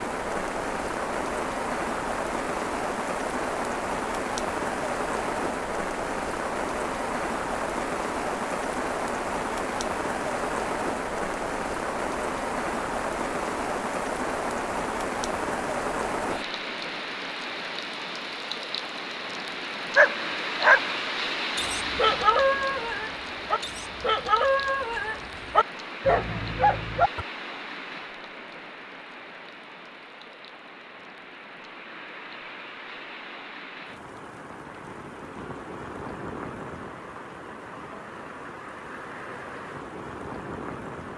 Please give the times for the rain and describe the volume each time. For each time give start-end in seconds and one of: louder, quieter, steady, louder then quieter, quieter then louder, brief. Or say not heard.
0.0-41.1 quieter.